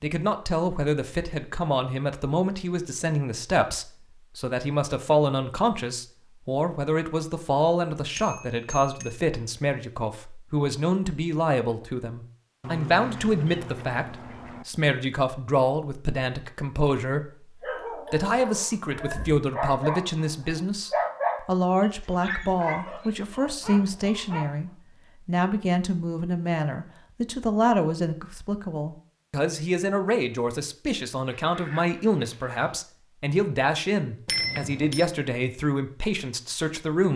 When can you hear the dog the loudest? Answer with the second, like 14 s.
21 s.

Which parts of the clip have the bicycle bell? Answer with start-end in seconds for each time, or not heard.
8.2-9.2, 34.2-35.1.